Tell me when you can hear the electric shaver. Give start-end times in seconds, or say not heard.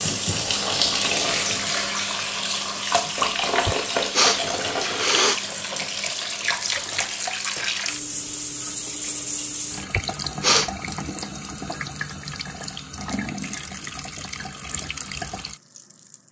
not heard.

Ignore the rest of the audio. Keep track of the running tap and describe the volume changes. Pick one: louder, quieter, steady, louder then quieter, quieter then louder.
quieter.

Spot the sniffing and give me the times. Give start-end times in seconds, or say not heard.
3.6-5.4, 9.9-11.0.